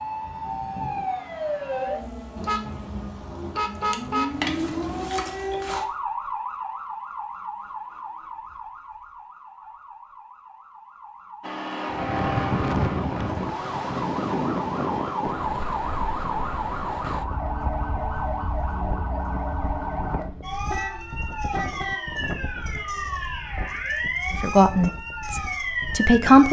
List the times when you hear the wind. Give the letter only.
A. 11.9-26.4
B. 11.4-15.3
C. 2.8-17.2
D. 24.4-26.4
A.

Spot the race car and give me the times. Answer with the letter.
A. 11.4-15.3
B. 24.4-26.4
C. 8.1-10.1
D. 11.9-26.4
A.